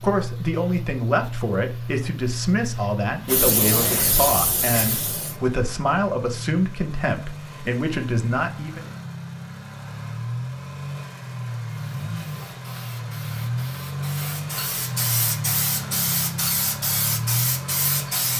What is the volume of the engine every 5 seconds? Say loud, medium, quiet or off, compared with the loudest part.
loud, medium, loud, loud.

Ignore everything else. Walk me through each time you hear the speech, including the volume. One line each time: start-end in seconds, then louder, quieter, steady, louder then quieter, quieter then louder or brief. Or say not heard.
0.0-8.9 steady.